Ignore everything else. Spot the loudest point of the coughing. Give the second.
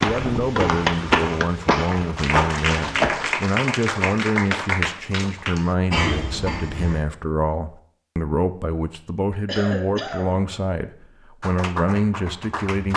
6 s.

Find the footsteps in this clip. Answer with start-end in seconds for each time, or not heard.
0.0-3.3.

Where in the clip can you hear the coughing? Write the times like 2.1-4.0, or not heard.
0.1-0.6, 5.9-7.0, 9.4-10.4.